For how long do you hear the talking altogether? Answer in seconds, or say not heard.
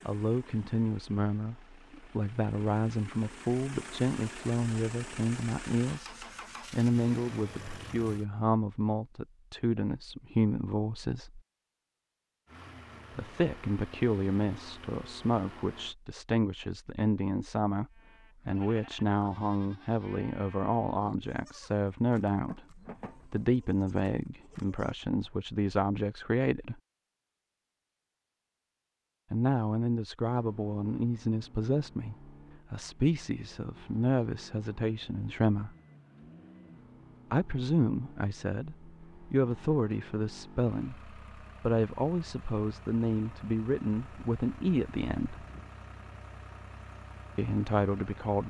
40 s.